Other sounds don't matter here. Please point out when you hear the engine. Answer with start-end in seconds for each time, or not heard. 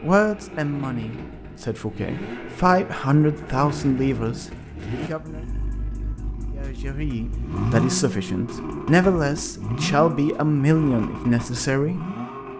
0.0-12.5.